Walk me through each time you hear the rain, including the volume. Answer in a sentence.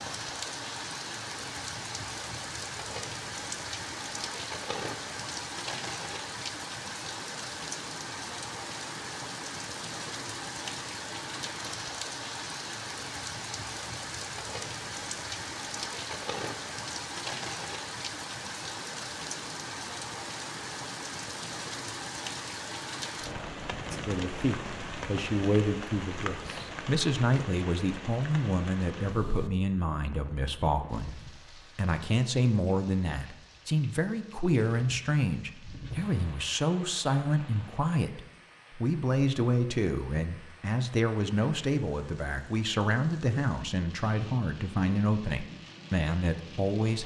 The rain can be heard from 0.0 to 47.0 s, getting quieter.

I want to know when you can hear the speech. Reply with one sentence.
You can hear the speech from 23.9 to 47.0 s.